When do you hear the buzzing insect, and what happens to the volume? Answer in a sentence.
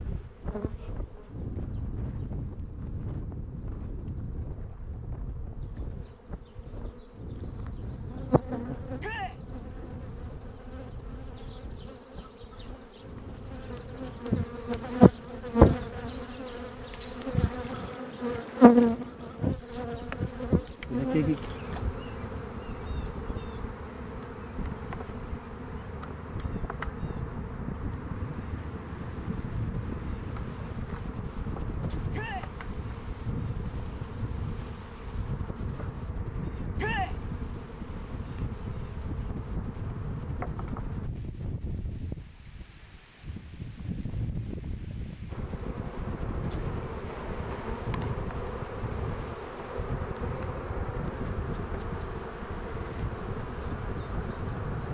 The buzzing insect can be heard from 0.0 to 41.1 s, getting louder then quieter; and from 45.3 to 54.8 s, at a steady volume.